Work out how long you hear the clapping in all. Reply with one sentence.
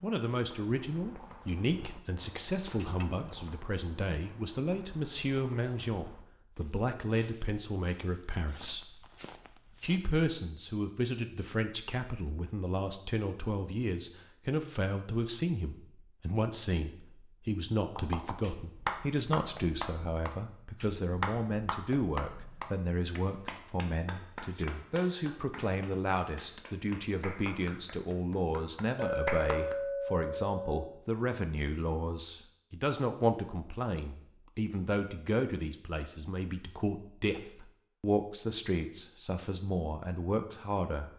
You can hear the clapping for 12 seconds altogether.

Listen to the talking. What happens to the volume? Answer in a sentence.
The volume of the talking stays about the same.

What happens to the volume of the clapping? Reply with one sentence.
The loudness of the clapping goes down, then up.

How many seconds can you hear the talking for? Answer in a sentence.
The talking can be heard for 41 seconds in total.